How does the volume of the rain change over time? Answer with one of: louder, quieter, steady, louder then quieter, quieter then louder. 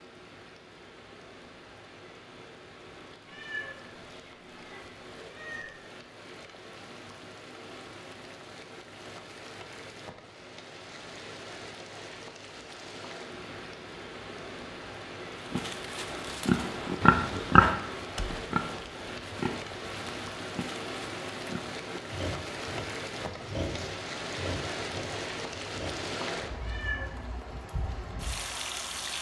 louder.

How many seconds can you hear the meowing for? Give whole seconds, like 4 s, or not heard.
3 s.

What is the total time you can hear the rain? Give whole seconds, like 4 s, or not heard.
29 s.